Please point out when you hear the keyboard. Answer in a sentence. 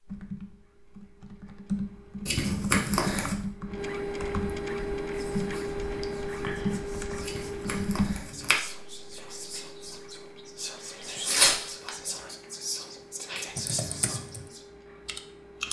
The keyboard can be heard from 0.1 to 8.2 s and from 13.6 to 15.6 s.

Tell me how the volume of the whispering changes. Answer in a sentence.
The loudness of the whispering goes up.